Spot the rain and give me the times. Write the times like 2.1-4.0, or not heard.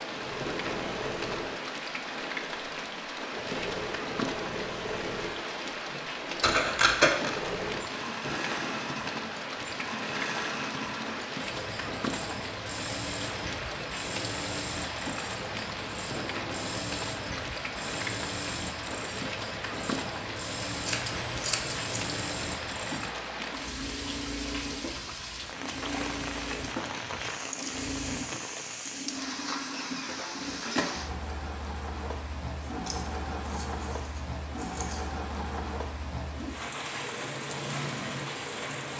0.0-38.9.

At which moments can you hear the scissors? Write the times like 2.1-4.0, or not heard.
6.4-7.3, 20.9-22.1, 32.6-35.0.